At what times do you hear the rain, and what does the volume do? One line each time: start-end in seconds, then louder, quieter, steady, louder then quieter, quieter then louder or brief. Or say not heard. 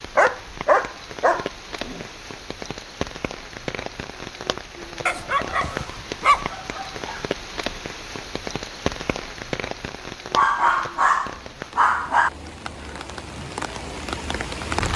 0.0-14.9 steady.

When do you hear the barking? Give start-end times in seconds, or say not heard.
0.1-2.0, 5.0-7.2, 10.3-12.3.